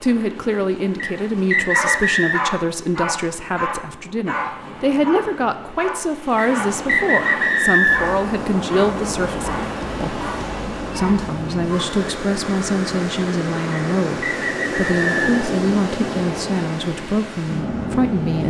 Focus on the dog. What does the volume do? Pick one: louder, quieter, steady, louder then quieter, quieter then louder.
quieter.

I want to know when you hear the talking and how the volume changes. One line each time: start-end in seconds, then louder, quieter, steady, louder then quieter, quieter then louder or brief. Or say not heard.
0.0-18.4 steady.